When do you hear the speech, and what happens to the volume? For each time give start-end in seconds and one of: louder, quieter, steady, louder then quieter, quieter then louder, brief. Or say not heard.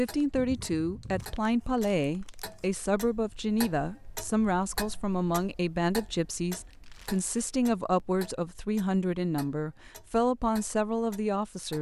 0.0-11.7 steady.